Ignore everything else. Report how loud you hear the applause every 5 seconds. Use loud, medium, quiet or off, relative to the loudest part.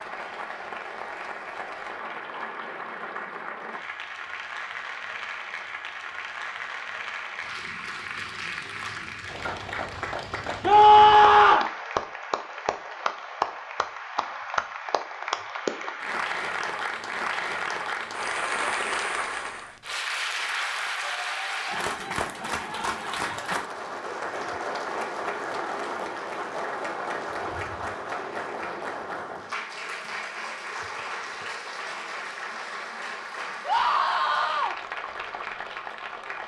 medium, medium, loud, loud, loud, loud, medium, medium.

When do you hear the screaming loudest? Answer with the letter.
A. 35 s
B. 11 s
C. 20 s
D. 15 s
B.